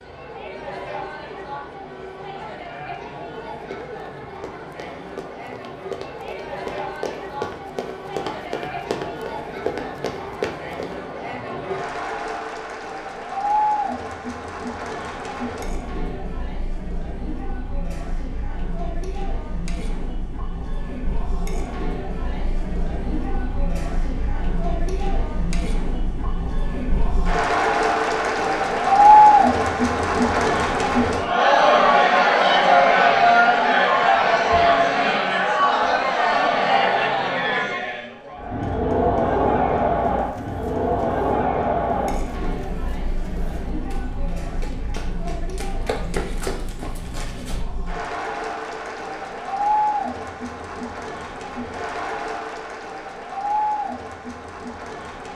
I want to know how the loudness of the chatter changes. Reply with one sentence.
The loudness of the chatter goes up, then down.